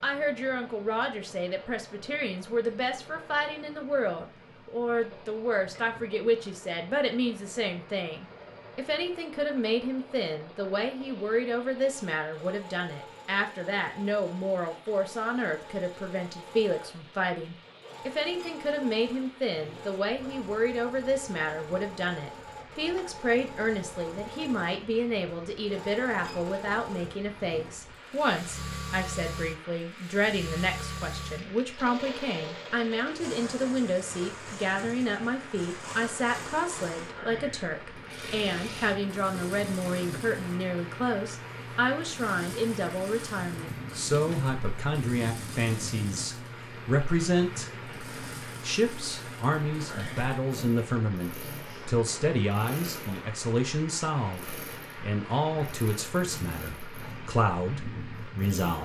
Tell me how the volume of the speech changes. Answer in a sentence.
The volume of the speech stays about the same.